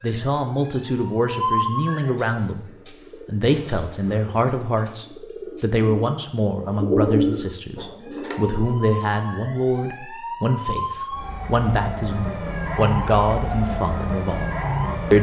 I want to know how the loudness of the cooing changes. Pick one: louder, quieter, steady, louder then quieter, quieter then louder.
louder.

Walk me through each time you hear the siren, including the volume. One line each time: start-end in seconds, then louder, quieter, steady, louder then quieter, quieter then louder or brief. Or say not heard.
0.0-2.1 brief
8.0-15.1 louder.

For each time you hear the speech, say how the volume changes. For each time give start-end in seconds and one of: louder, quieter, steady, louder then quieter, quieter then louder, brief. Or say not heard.
0.0-2.6 brief
3.2-14.5 steady.